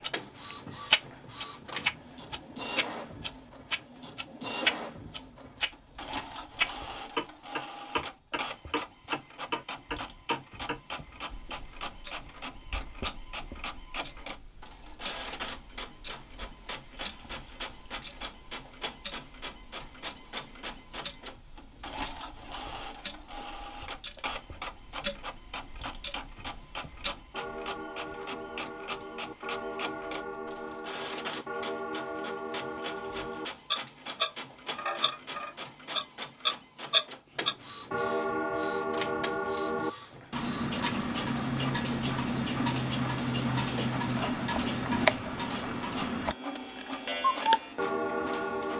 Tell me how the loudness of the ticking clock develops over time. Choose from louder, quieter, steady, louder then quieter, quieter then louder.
quieter then louder.